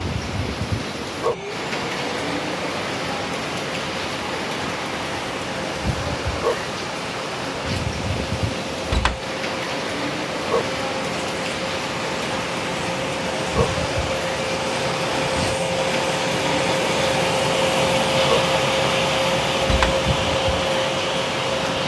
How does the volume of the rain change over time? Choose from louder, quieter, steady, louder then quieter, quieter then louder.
steady.